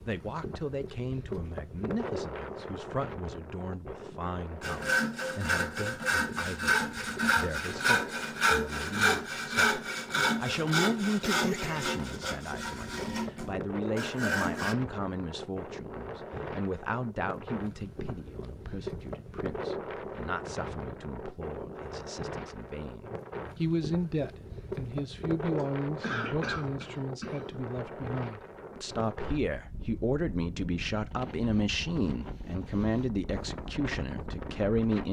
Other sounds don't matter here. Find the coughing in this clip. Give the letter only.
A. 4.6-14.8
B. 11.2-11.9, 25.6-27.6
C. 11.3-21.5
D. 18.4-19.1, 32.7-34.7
B.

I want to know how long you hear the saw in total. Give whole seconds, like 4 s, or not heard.
10 s.